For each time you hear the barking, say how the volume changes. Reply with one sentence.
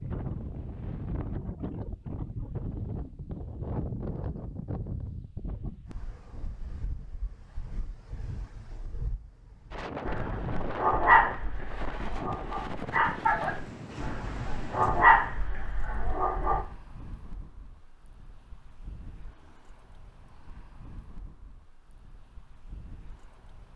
You can hear the barking from 10.1 to 16.6 s, getting quieter then louder.